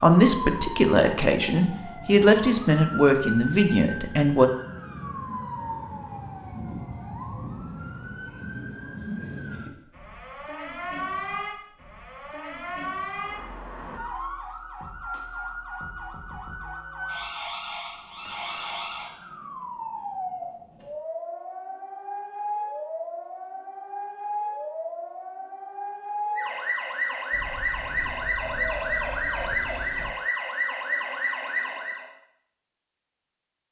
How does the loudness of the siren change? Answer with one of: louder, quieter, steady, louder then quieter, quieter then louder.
louder.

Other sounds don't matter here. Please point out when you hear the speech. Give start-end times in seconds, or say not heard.
0.0-4.5.